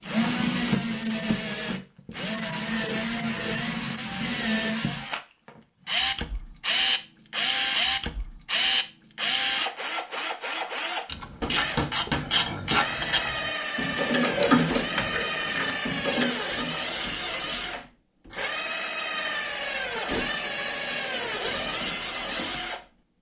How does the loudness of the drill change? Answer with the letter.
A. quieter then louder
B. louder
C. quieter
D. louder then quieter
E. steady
E.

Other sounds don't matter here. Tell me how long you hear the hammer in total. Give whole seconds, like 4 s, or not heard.
2 s.